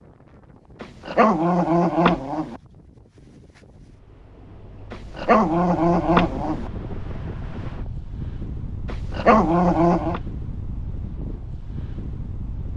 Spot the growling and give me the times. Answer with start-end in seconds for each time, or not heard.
0.8-2.5, 4.9-6.7, 8.8-10.2.